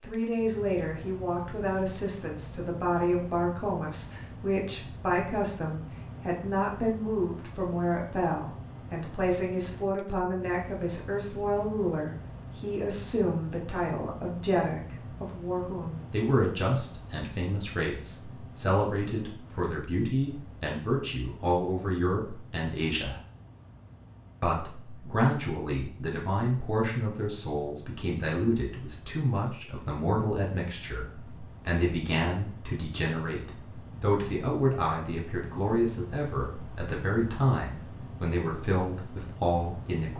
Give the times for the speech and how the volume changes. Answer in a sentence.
You can hear the speech from 0.0 to 23.1 s, at a steady volume; and from 24.4 to 40.1 s, at a steady volume.